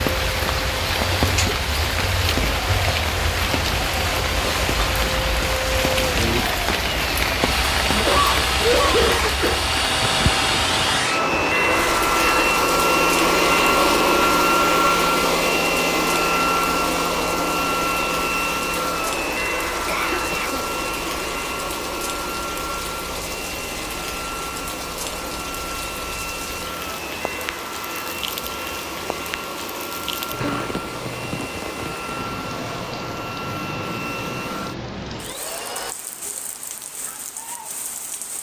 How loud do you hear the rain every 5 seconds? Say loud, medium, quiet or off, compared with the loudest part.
loud, loud, medium, medium, medium, medium, medium, quiet.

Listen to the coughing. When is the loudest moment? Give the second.
9 s.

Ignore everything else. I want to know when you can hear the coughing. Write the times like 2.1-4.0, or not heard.
7.9-9.7, 19.9-20.6, 30.3-31.4.